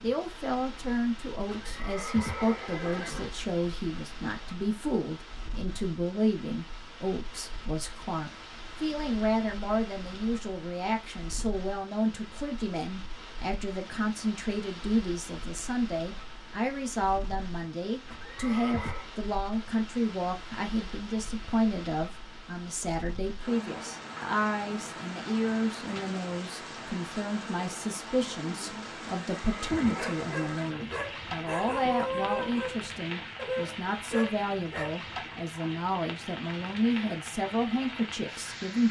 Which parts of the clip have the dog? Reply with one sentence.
You can hear the dog from 29.9 to 35.0 s.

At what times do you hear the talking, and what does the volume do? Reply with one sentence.
The talking can be heard from 0.0 to 38.8 s, at a steady volume.